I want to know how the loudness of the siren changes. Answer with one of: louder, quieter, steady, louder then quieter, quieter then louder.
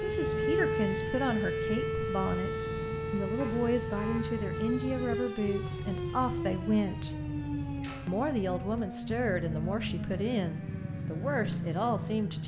quieter.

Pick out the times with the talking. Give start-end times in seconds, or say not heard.
0.0-7.2, 8.1-12.4.